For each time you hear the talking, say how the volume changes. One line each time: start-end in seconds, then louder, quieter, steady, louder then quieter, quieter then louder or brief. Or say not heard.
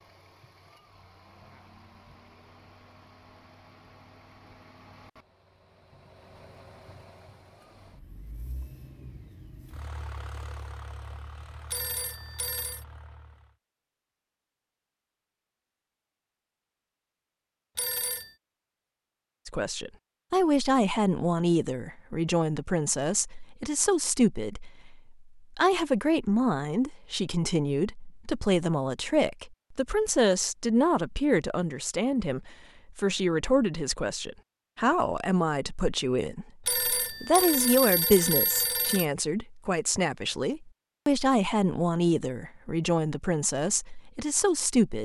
19.4-45.0 steady.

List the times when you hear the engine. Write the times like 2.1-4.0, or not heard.
0.0-13.6.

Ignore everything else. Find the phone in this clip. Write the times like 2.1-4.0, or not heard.
11.7-12.8, 17.8-18.3, 36.6-39.0.